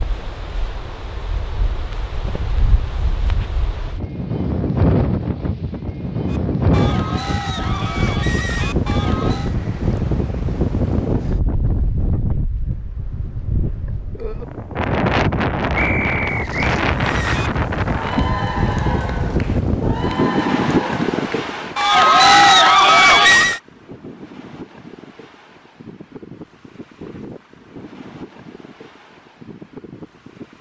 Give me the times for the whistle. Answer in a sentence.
The whistle can be heard from 15.8 to 16.8 s.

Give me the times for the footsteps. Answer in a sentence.
The footsteps can't be heard in this clip.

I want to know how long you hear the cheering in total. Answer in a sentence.
You can hear the cheering for 10 seconds altogether.